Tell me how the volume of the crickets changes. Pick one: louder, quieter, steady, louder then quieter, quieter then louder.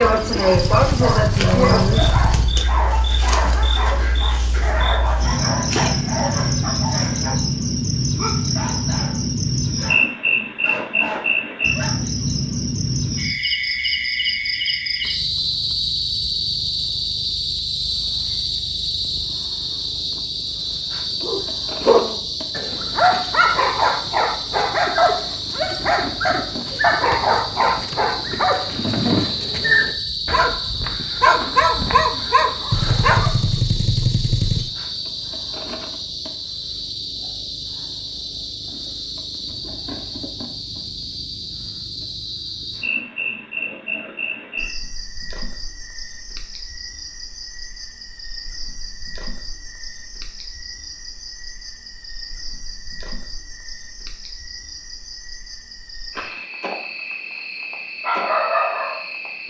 quieter.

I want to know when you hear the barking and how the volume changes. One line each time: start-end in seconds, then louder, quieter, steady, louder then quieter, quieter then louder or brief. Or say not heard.
0.0-12.1 quieter
21.2-33.4 steady
58.0-59.1 brief.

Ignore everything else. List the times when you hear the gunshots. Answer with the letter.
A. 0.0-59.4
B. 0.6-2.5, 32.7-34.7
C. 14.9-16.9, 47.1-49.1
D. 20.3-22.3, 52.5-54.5
B.